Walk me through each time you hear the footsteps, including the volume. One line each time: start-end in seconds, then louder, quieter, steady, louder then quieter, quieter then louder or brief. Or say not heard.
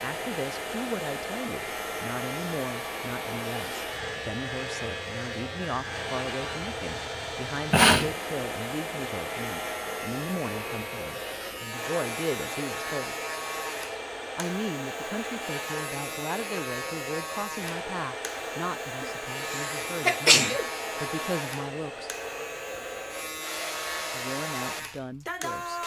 not heard.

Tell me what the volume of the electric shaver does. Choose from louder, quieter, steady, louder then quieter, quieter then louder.
steady.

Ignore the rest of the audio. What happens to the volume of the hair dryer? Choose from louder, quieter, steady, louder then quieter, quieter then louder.
steady.